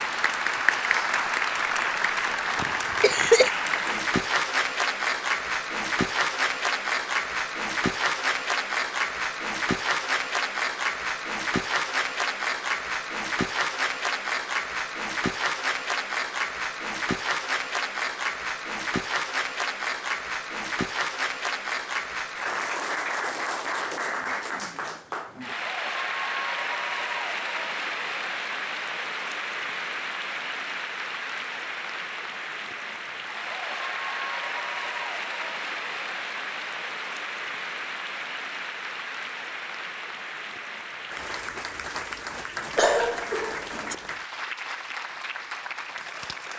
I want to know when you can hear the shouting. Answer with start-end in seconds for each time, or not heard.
not heard.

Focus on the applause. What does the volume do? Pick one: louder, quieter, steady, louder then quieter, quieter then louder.
quieter.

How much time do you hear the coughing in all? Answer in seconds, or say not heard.
2 s.